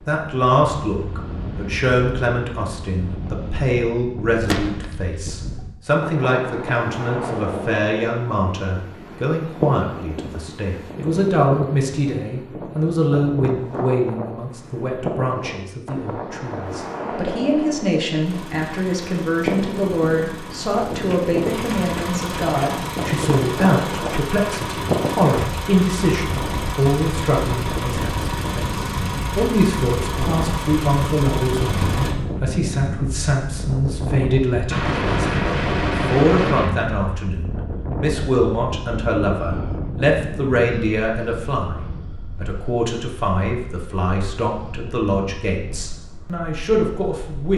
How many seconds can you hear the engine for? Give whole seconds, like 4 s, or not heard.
14 s.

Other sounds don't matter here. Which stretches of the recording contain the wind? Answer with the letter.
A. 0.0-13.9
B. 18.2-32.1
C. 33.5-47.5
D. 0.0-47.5
D.